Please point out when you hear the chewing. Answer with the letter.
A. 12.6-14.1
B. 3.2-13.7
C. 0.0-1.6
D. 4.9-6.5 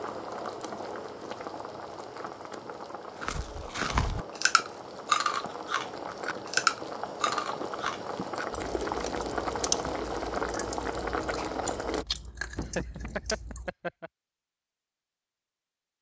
B.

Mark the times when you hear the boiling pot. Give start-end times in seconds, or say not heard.
0.0-12.1.